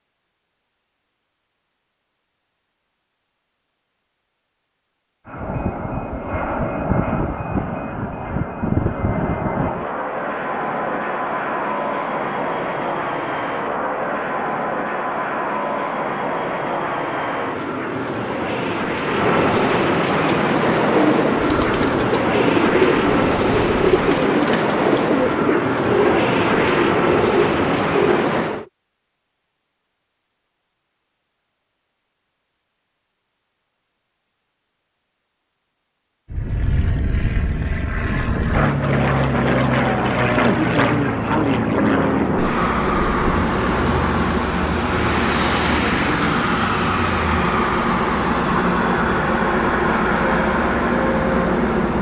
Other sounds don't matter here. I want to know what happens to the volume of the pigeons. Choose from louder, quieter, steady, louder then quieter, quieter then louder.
steady.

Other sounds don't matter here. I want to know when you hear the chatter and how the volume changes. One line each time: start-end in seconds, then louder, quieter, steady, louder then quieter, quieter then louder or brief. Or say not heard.
not heard.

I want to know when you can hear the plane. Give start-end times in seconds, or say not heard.
5.2-28.6, 36.3-51.9.